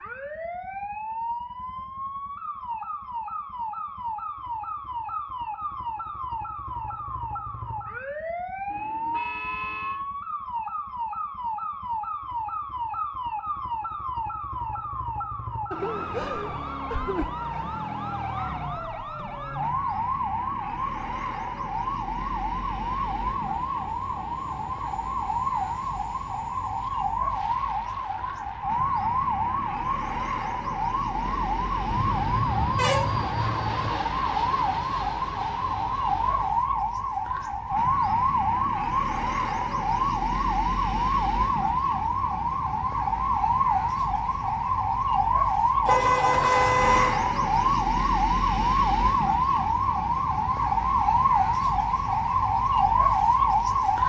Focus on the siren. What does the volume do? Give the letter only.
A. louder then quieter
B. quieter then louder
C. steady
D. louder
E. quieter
D.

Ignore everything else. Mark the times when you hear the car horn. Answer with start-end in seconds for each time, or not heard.
8.7-10.0, 31.9-33.9, 45.9-47.1.